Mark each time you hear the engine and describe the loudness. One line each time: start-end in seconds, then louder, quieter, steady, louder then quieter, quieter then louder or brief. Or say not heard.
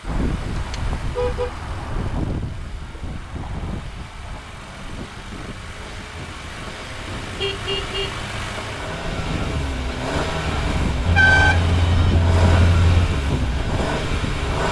0.0-14.6 louder.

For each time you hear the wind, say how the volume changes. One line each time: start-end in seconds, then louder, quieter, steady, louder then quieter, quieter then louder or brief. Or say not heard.
0.0-14.6 quieter then louder.